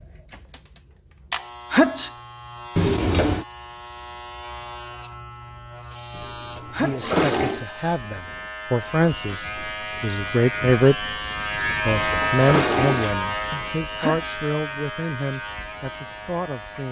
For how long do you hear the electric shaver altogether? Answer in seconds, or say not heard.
17 s.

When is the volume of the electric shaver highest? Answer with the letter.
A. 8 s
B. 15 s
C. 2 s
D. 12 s
D.